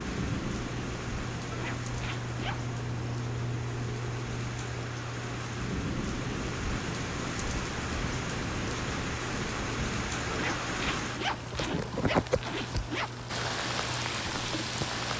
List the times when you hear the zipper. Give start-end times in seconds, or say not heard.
1.5-2.6, 10.3-13.1.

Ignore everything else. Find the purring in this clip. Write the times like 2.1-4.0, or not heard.
0.0-15.1.